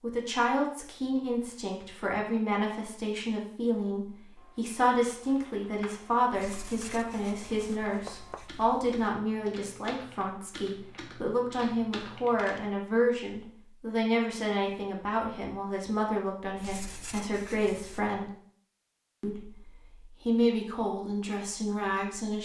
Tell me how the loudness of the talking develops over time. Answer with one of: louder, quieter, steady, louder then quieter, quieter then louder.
steady.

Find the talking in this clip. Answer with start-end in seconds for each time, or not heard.
0.0-18.3, 19.2-22.4.